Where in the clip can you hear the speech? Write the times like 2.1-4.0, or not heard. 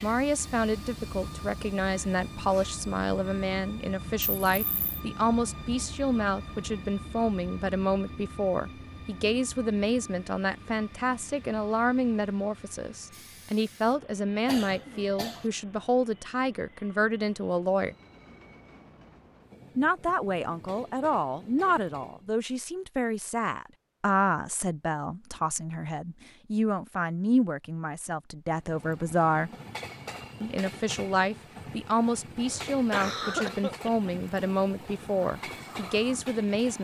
0.0-17.9, 19.8-29.5, 30.4-36.7.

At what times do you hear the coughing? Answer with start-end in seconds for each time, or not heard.
4.2-5.0, 14.4-15.5, 32.5-34.1.